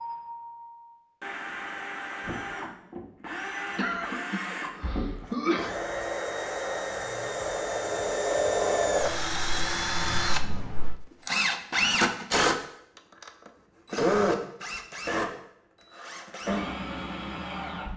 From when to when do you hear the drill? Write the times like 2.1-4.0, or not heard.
0.0-17.9.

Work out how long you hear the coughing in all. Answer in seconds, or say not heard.
2 s.